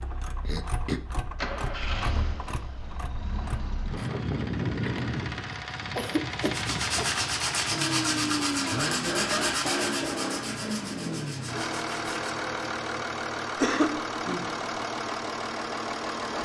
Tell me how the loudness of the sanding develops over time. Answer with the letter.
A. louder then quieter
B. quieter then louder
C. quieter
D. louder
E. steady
C.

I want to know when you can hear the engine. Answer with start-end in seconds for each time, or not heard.
0.0-16.4.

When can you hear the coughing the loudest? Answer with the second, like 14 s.
14 s.